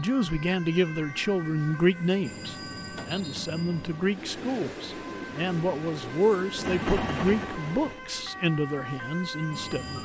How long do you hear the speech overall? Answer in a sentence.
The speech can be heard for 10 seconds in total.